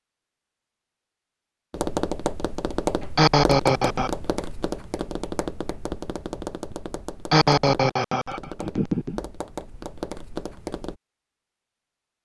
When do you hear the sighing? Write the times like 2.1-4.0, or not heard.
3.1-4.1, 7.3-9.2.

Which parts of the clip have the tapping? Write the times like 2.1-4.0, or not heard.
1.7-11.0.